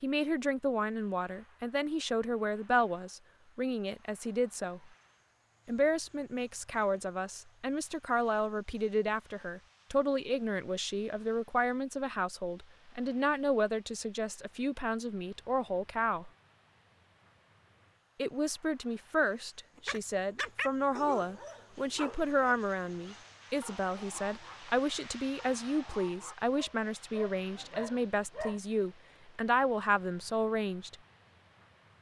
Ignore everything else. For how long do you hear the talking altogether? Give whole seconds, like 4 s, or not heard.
28 s.